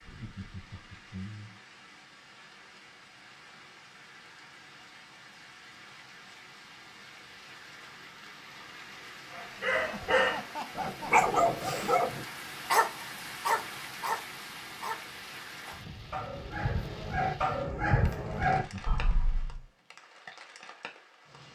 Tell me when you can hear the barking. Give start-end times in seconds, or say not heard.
9.3-19.6.